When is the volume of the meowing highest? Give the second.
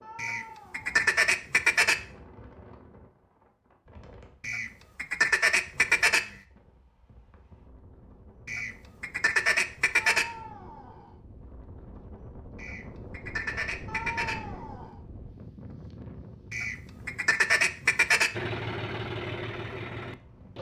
14 s.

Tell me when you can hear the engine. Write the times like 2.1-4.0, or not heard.
18.3-20.5.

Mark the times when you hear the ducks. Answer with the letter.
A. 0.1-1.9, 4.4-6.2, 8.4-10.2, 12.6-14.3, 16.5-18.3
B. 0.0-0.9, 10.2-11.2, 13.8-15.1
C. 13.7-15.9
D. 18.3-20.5
A.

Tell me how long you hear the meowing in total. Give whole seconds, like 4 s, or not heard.
3 s.